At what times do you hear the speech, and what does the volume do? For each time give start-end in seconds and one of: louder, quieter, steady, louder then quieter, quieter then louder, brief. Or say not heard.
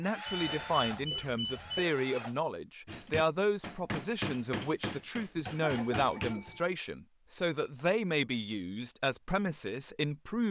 0.0-10.4 steady.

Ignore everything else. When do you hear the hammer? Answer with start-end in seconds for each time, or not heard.
2.9-6.3.